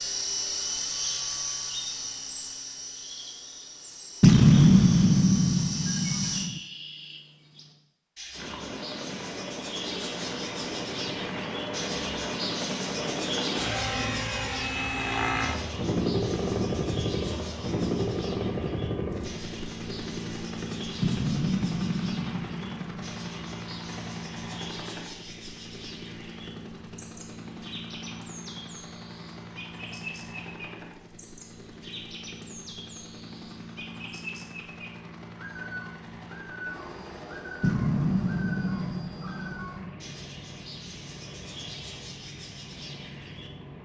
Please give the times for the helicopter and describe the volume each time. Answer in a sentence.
The helicopter can be heard from 0.0 to 6.5 s, getting quieter then louder; and from 8.3 to 43.8 s, getting quieter.